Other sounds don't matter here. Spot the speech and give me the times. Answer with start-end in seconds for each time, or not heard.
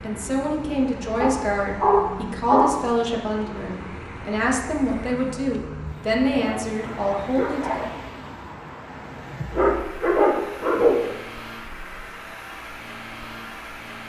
0.0-7.9.